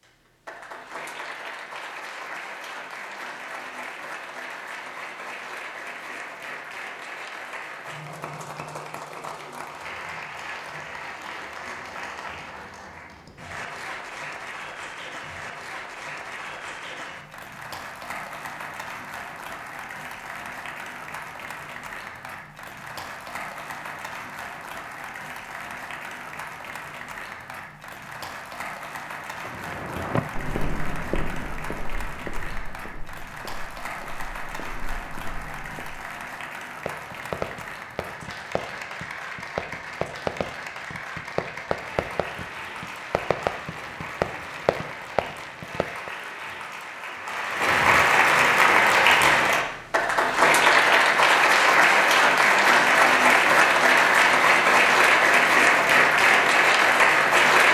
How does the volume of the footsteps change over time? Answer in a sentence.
The loudness of the footsteps goes down, then up.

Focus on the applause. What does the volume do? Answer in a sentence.
The loudness of the applause goes up.